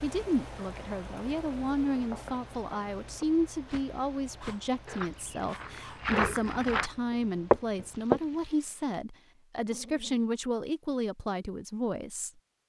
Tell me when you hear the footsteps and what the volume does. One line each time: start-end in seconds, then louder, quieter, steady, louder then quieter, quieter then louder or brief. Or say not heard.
1.9-8.2 louder.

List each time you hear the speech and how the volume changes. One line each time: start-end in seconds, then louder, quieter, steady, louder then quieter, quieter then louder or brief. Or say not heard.
0.0-12.3 steady.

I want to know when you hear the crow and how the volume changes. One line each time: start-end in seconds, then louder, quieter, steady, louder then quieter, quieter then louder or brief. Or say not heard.
not heard.